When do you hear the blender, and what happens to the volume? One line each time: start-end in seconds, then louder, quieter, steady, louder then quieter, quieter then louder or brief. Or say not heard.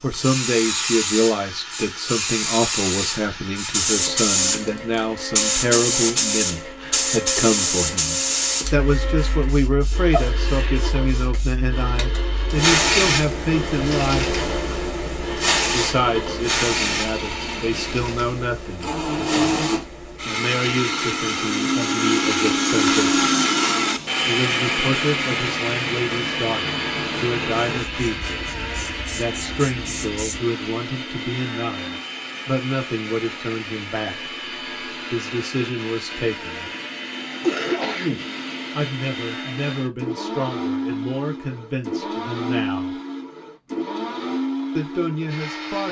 0.1-45.8 louder then quieter.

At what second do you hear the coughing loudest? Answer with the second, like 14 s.
38 s.